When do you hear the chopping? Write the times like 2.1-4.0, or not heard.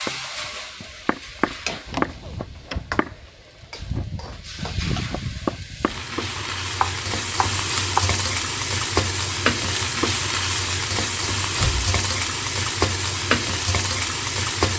0.1-8.1.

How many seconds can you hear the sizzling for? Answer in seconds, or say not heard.
15 s.